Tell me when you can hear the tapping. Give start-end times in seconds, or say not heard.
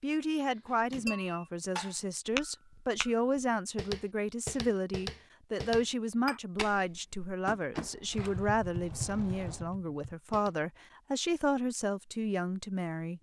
0.7-10.5.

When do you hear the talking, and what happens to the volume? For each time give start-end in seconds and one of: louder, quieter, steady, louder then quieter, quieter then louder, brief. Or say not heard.
0.0-13.1 steady.